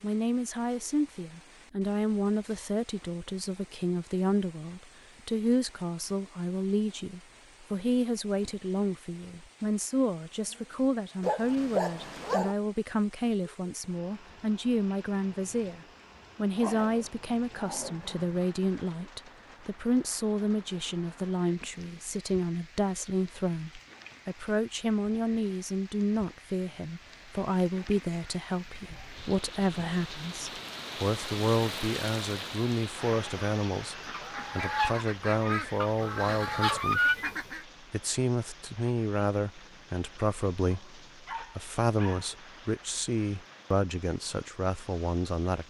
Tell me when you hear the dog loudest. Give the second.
12 s.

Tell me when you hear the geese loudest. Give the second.
37 s.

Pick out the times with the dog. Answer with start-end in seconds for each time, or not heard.
11.2-12.6, 16.6-18.4, 40.6-42.4.